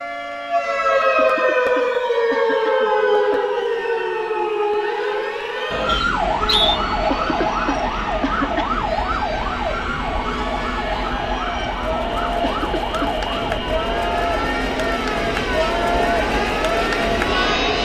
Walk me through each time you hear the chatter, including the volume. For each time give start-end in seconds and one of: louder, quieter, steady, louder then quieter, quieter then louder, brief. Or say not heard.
0.0-17.7 louder.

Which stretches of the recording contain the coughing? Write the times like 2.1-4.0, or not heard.
1.1-3.5, 7.1-8.8, 12.4-13.2.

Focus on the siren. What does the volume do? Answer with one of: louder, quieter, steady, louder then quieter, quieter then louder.
quieter.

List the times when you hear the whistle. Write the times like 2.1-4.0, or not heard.
5.8-6.8.